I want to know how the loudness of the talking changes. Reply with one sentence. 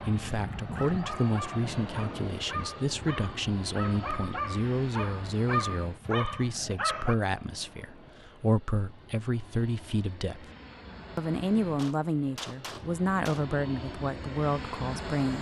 The volume of the talking stays about the same.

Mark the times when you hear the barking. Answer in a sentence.
The barking can be heard from 0.6 to 7.2 s.